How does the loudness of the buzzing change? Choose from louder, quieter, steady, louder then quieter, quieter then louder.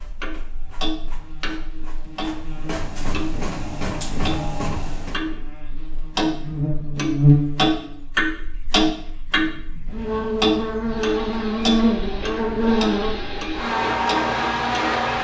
louder.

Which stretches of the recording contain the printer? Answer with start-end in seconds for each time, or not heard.
0.0-5.2, 10.8-15.1.